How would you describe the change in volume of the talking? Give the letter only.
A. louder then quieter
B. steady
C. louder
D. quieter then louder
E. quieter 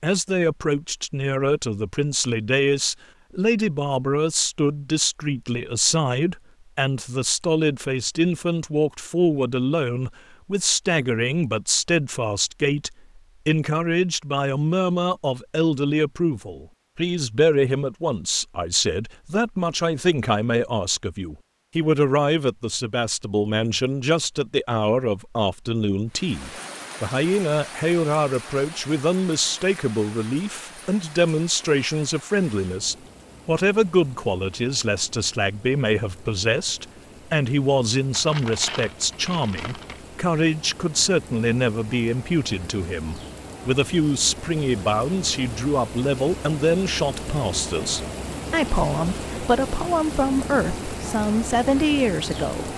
B.